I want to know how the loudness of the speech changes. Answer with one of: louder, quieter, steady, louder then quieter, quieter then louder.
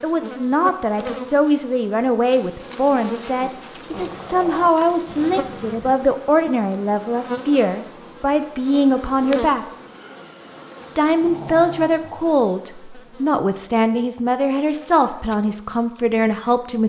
steady.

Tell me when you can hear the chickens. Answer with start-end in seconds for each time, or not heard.
not heard.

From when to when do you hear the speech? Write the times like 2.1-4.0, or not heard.
0.0-9.7, 10.9-16.8.